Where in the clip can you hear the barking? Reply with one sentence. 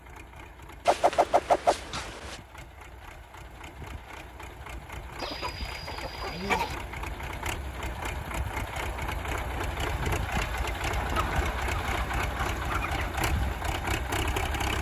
You can't hear the barking here.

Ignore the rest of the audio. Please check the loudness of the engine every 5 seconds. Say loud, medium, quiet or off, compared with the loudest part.
quiet, medium, loud.